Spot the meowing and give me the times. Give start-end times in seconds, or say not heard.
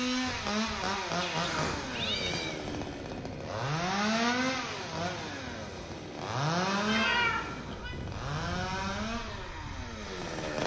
1.2-2.6, 6.8-8.0.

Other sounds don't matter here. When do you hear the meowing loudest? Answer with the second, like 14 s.
7 s.